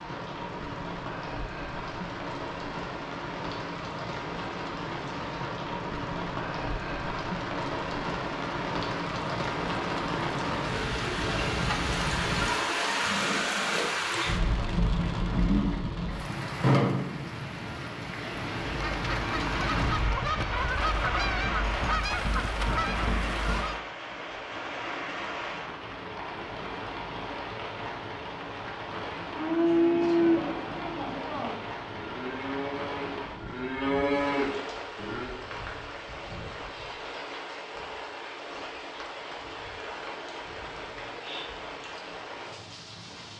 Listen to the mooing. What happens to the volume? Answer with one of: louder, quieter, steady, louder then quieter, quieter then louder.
quieter then louder.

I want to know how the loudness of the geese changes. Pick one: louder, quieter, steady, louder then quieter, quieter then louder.
steady.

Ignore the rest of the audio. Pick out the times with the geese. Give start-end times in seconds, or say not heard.
18.6-23.8.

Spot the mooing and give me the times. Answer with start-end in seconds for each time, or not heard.
29.3-35.3.